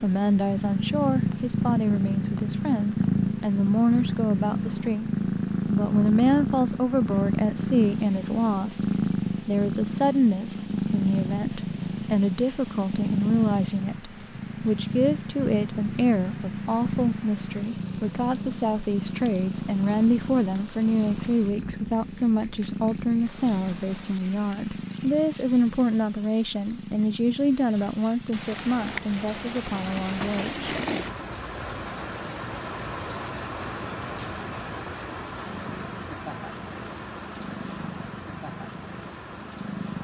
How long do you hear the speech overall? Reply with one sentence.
You can hear the speech for 31 seconds altogether.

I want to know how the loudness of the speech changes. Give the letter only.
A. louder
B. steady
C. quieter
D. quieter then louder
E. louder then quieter
B.